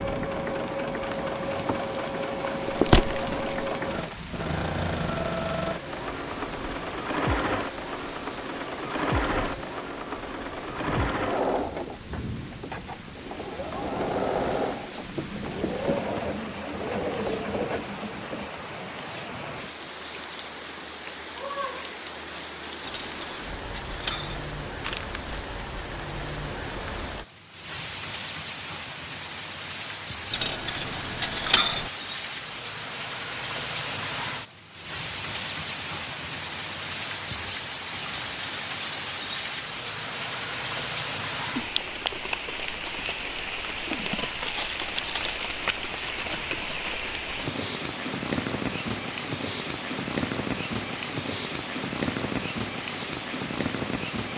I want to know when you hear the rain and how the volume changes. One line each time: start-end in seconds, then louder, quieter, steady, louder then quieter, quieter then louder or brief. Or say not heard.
0.0-54.3 louder.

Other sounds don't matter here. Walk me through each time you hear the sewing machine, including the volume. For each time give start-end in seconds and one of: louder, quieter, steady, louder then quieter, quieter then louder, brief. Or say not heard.
0.0-18.4 steady.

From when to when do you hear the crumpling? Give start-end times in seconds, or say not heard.
2.6-3.7, 24.8-25.4, 44.4-46.3.